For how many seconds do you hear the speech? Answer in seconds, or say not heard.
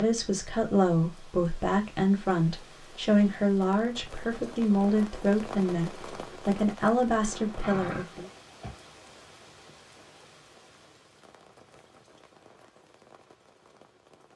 8 s.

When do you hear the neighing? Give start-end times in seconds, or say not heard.
7.3-8.9.